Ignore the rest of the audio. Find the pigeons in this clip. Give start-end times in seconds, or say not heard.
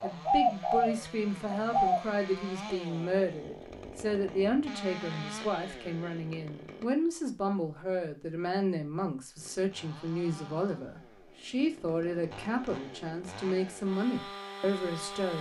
0.0-2.1.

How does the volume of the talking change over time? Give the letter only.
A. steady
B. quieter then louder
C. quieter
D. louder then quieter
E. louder
A.